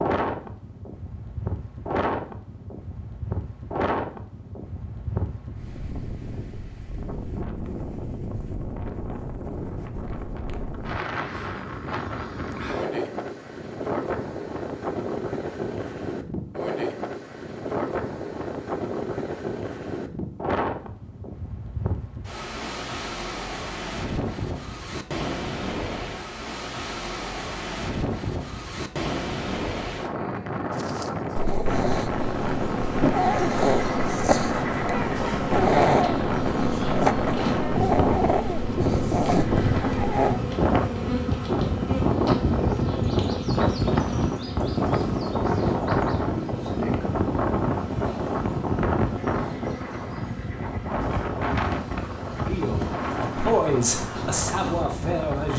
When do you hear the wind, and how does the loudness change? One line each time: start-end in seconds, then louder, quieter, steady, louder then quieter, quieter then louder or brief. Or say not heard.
0.0-55.5 louder.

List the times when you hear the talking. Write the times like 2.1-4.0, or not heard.
52.4-55.5.